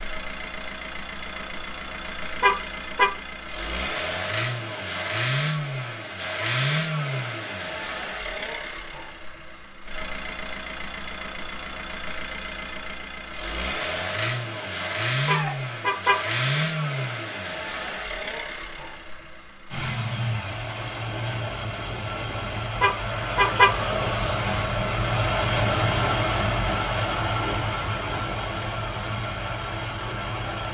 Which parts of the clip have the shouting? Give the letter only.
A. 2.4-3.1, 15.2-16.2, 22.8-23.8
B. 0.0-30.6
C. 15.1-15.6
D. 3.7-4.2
C.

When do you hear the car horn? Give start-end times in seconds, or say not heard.
2.4-3.1, 15.2-16.2, 22.8-23.8.